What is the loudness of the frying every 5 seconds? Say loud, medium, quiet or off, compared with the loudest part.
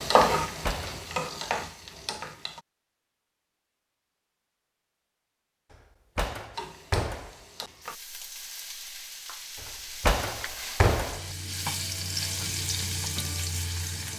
loud, quiet, medium.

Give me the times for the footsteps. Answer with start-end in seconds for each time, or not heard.
not heard.